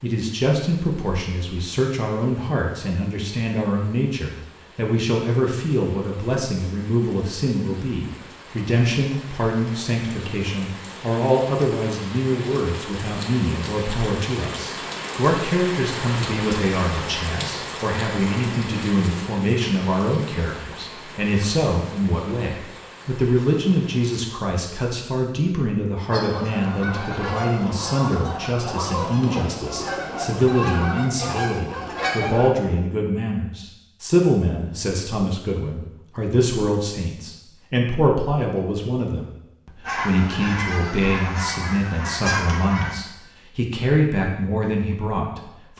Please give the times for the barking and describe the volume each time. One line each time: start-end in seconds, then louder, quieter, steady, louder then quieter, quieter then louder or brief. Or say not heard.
not heard.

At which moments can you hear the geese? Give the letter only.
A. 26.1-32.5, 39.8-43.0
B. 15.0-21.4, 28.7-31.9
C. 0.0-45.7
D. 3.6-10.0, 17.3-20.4
A.